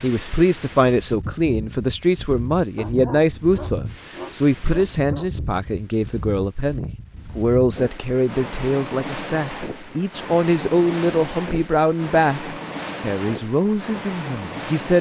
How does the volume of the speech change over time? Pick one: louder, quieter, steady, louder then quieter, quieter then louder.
steady.